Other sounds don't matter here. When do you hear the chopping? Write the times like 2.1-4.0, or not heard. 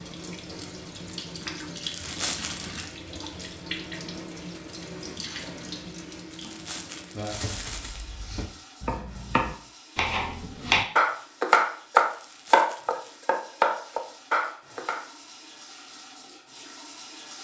7.3-15.0.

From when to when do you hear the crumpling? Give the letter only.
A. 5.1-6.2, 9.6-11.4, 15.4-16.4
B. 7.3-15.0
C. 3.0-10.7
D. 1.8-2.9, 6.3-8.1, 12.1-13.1
D.